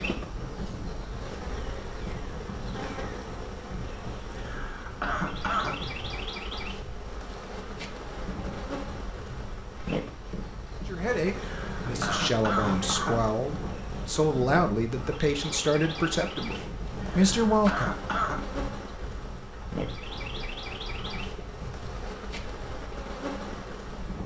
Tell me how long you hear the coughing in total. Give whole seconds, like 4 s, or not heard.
5 s.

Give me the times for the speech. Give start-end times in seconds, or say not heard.
10.8-17.9.